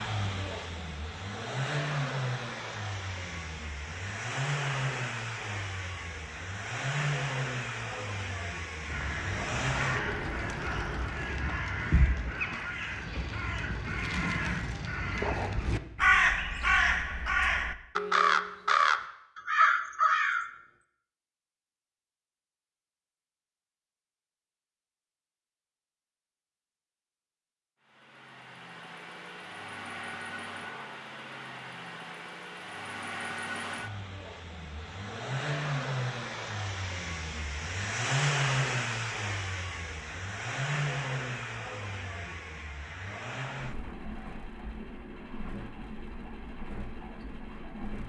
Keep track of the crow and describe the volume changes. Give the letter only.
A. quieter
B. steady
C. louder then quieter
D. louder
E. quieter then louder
D.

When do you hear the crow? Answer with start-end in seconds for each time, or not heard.
8.8-20.4.